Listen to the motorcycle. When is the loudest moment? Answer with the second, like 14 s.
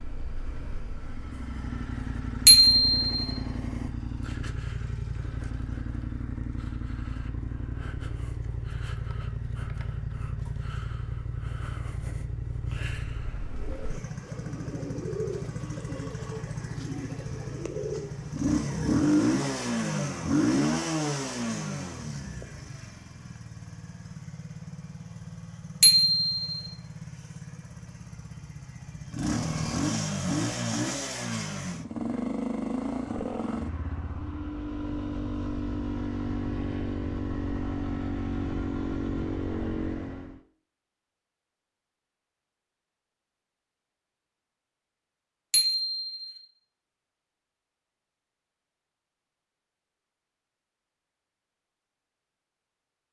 19 s.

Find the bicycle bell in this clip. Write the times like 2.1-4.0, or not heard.
2.5-3.2, 25.8-26.6, 45.5-46.4.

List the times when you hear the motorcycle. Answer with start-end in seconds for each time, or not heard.
0.0-40.4.